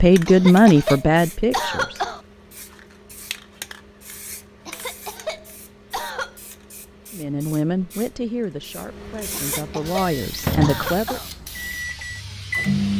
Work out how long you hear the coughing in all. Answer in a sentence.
The coughing can be heard for 6 seconds in total.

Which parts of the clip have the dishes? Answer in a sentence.
You can't hear the dishes here.